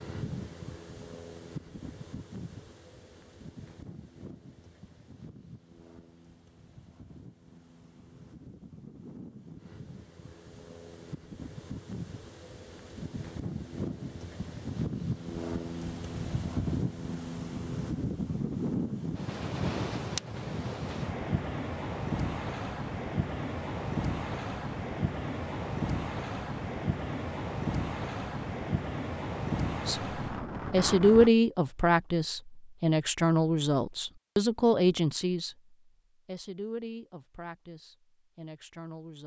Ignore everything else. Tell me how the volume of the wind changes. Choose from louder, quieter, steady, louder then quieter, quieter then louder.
louder.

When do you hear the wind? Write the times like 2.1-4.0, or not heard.
0.0-31.3.